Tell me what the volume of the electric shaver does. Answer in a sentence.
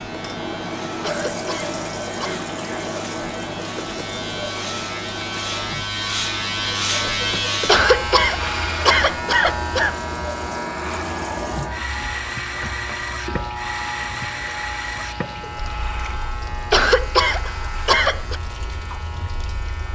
The volume of the electric shaver goes up, then down.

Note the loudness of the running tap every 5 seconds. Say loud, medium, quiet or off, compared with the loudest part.
loud, medium, loud, medium.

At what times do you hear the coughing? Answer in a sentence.
You can hear the coughing from 1.0 to 2.5 s, from 7.7 to 9.9 s and from 16.7 to 18.4 s.